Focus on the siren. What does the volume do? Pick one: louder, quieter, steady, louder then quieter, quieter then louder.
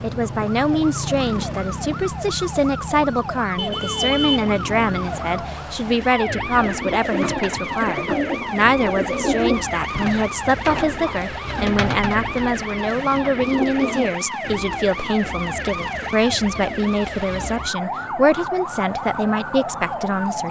steady.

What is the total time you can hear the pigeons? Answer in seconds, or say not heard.
8 s.